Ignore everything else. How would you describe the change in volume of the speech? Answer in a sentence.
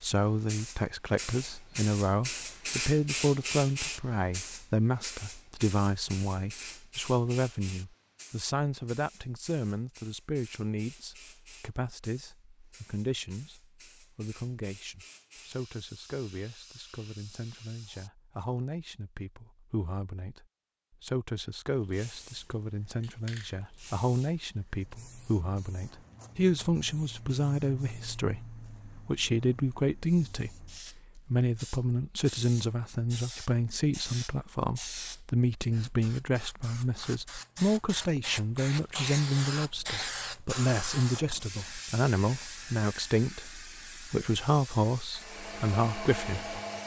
The loudness of the speech goes down, then up.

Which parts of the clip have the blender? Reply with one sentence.
You can hear the blender from 45.1 to 46.8 s.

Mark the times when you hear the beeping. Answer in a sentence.
You can't hear the beeping here.